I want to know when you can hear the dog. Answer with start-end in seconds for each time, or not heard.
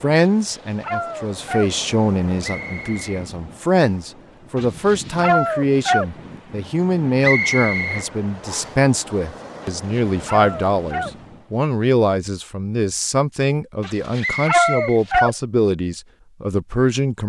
0.4-1.7, 4.5-6.0, 9.8-11.1, 13.8-15.3.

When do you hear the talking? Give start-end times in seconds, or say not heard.
0.0-17.2.